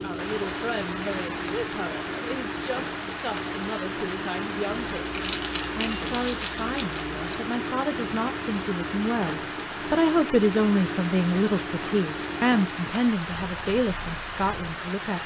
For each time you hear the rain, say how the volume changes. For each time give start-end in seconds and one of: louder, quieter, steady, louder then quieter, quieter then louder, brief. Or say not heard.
0.0-15.2 steady.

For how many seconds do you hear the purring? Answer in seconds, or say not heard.
15 s.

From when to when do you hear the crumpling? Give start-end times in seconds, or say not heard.
4.8-7.2.